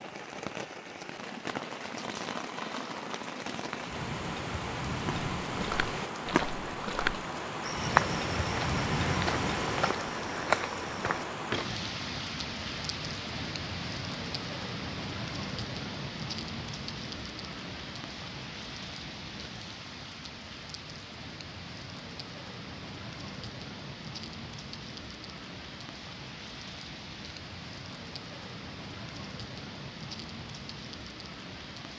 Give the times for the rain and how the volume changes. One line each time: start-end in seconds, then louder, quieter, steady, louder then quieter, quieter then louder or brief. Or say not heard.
0.0-31.9 quieter.